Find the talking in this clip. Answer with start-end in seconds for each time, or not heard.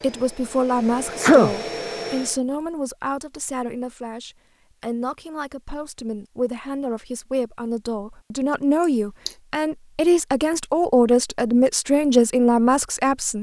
0.0-13.3.